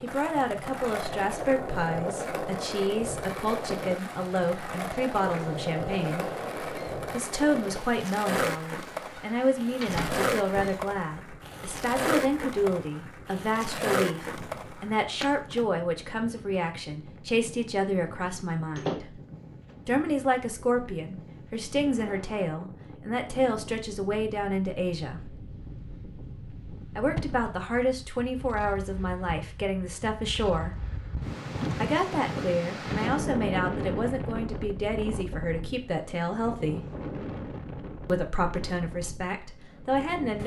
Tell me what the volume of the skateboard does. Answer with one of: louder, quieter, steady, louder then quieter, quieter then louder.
steady.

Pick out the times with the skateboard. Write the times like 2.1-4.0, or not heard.
0.0-15.7.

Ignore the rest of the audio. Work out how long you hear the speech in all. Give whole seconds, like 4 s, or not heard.
35 s.